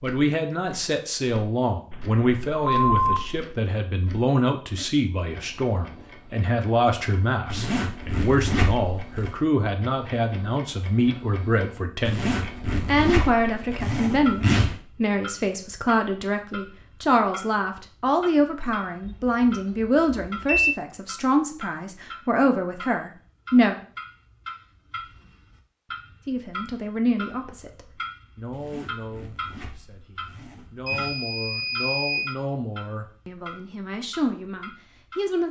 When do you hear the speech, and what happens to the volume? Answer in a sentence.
You can hear the speech from 0.0 to 23.8 s, at a steady volume; and from 26.2 to 35.4 s, getting quieter then louder.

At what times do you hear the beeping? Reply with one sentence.
The beeping can be heard from 1.9 to 3.5 s, from 19.0 to 20.8 s and from 30.9 to 32.4 s.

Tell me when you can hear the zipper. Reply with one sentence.
The zipper can be heard from 7.5 to 9.3 s, from 12.1 to 14.8 s and from 28.5 to 31.1 s.